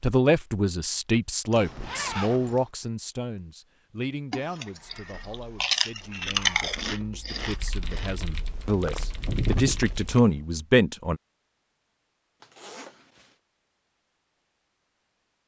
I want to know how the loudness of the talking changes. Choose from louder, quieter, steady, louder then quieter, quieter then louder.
quieter then louder.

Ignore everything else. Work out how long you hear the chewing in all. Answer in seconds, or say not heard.
6 s.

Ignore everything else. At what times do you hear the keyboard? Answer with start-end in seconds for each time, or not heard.
6.2-10.2.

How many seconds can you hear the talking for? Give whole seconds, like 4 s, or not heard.
11 s.